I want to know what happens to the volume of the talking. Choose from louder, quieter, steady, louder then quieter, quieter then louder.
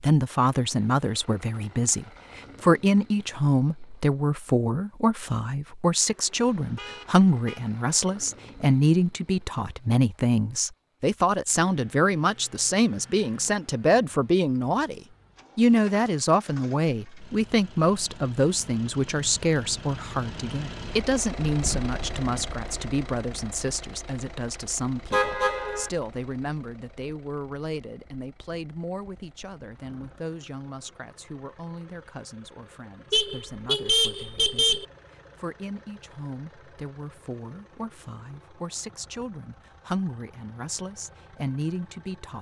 quieter.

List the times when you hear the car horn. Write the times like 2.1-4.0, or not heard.
6.4-7.7, 25.1-25.9, 33.1-34.9.